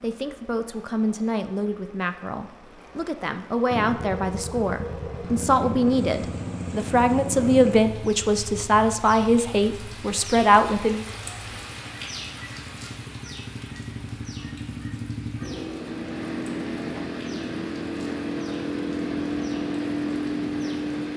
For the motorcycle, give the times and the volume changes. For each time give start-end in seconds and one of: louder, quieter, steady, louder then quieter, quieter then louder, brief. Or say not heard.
3.7-21.1 quieter then louder.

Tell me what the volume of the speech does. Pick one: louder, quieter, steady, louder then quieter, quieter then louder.
louder.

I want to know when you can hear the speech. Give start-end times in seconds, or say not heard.
0.0-11.1.